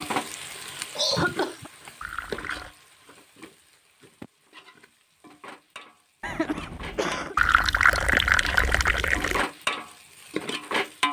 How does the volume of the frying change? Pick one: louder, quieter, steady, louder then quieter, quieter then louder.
quieter then louder.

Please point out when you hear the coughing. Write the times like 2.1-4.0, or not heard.
0.9-1.7, 6.2-7.3.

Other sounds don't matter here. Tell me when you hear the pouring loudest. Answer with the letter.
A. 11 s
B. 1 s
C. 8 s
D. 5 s
C.